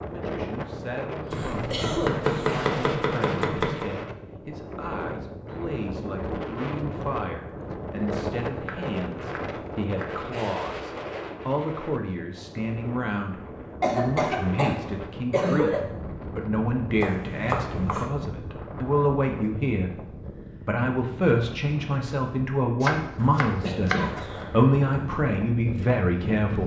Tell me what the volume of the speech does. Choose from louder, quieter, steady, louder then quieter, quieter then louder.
louder.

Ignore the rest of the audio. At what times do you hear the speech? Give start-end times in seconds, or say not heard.
0.0-26.6.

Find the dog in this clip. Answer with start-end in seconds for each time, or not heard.
not heard.